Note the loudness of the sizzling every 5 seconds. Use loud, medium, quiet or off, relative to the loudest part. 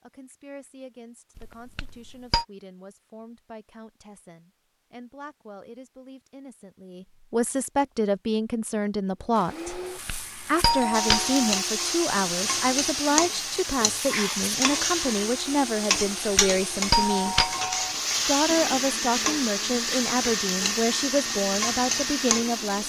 off, off, loud, loud, loud.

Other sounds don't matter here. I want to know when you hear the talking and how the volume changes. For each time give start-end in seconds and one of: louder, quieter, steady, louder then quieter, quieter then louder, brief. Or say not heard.
0.0-9.8 louder
10.4-17.4 steady
18.2-22.8 steady.